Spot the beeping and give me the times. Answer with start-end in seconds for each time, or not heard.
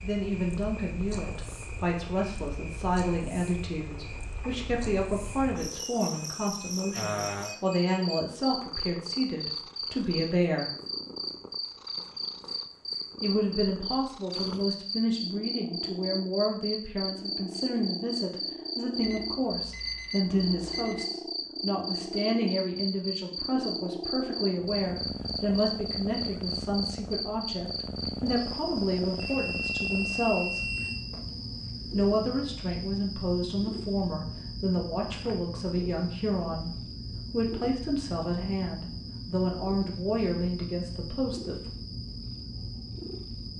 6.2-8.2, 19.0-21.1, 29.1-31.0.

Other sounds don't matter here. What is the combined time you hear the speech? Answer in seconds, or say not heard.
38 s.